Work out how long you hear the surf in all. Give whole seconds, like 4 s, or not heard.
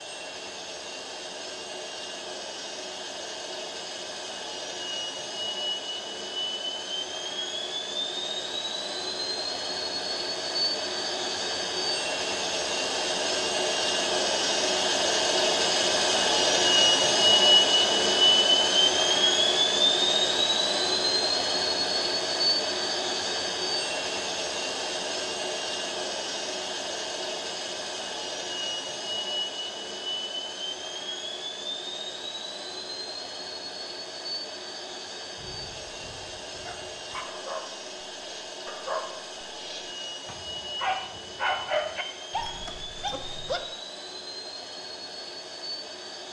not heard.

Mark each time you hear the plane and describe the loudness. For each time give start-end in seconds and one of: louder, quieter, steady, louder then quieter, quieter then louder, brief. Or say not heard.
0.0-46.2 louder then quieter.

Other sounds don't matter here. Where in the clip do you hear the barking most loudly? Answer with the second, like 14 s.
42 s.